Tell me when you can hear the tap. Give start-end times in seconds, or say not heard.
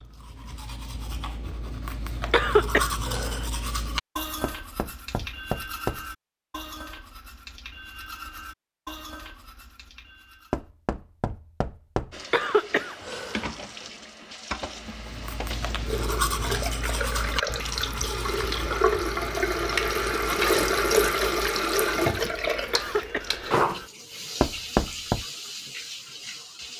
12.1-26.7.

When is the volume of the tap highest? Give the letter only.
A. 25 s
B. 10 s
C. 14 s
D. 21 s
D.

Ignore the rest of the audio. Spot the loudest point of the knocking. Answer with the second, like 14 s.
25 s.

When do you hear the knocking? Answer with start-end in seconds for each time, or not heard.
4.4-6.1, 10.5-12.2, 24.4-25.2.